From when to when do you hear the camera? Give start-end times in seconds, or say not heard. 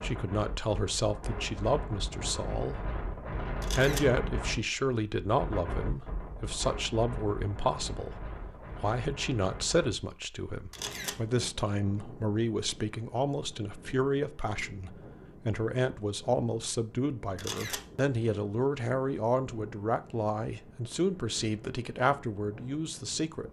3.6-4.1, 10.7-11.2, 17.4-17.9.